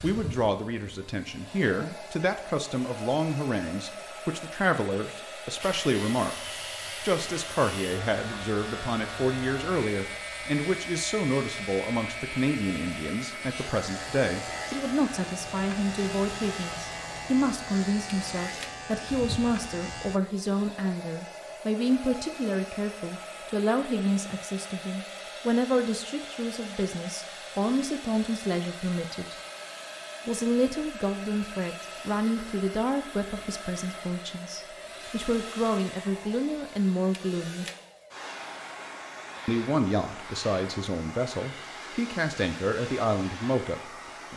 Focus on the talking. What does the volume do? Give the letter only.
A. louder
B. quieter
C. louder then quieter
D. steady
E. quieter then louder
D.